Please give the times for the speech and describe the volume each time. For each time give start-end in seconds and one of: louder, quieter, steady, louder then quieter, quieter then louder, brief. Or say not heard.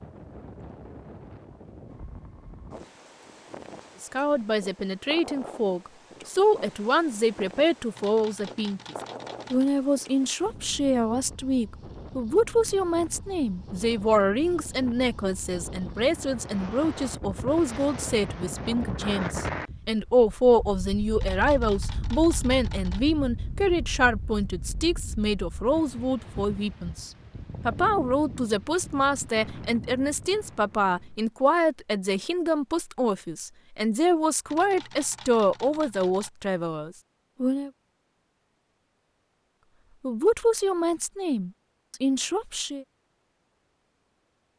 4.0-37.7 steady
40.0-42.9 brief.